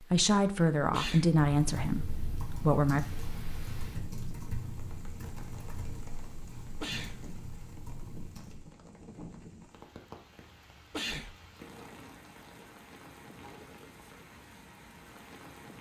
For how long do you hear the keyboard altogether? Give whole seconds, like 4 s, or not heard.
7 s.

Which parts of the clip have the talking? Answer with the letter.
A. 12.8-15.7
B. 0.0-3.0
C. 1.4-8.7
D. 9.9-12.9
B.